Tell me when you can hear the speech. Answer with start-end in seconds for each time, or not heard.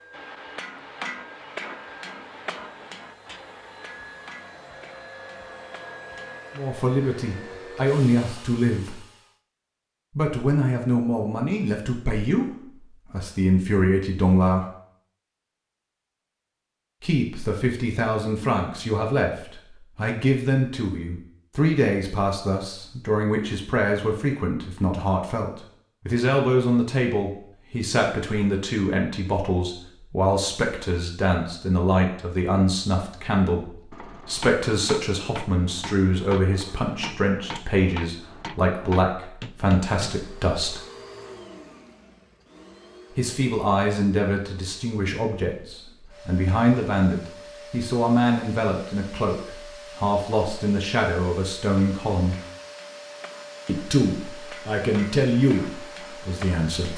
6.5-8.9, 10.2-12.4, 13.1-14.7, 17.0-40.8, 43.1-52.4, 53.6-56.9.